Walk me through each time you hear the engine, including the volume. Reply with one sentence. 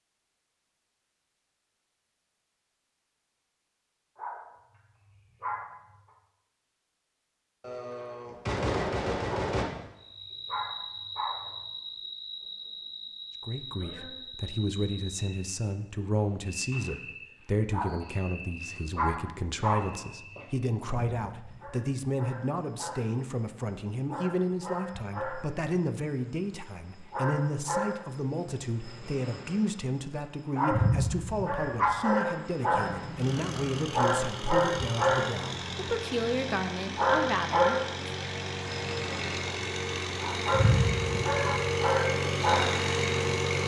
You can hear the engine from 32.8 to 43.6 s, getting louder.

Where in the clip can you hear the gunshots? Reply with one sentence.
You can hear the gunshots from 7.6 to 9.7 s.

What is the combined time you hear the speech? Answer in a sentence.
You can hear the speech for 25 seconds altogether.